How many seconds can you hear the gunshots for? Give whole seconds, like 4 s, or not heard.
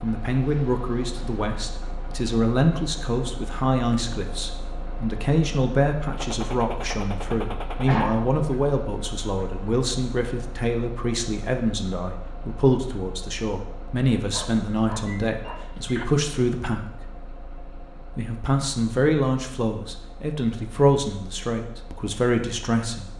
2 s.